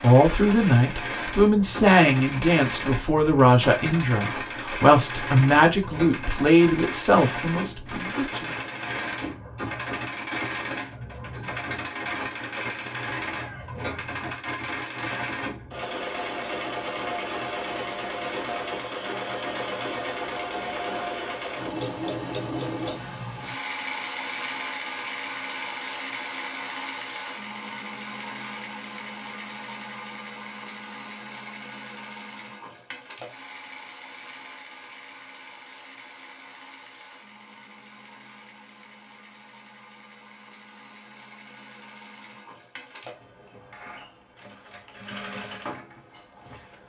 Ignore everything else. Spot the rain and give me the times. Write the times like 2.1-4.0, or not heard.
not heard.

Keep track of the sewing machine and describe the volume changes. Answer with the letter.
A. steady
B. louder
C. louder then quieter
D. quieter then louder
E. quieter
E.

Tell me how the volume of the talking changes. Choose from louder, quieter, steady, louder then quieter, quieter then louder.
steady.